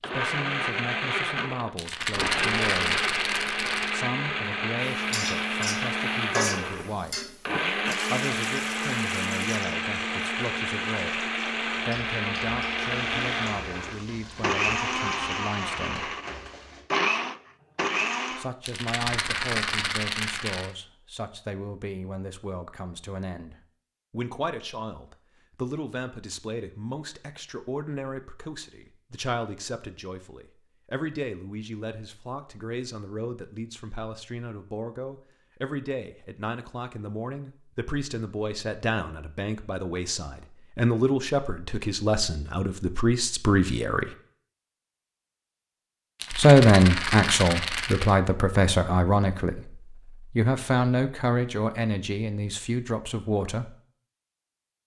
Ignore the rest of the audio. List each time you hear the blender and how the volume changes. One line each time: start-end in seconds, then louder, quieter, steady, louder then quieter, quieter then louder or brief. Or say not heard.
0.0-18.5 steady.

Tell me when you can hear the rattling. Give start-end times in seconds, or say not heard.
1.8-3.9, 18.6-20.7, 46.1-48.1.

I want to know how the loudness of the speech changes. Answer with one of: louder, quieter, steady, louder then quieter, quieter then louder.
louder.